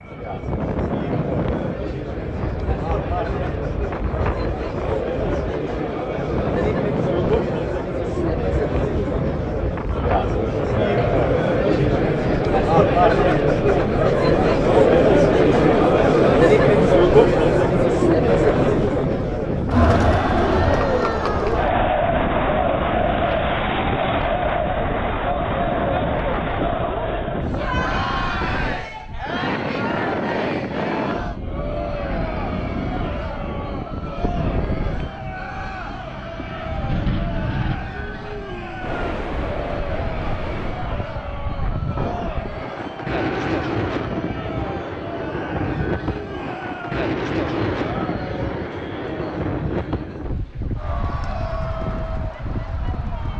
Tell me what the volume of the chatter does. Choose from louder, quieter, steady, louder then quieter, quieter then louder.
louder then quieter.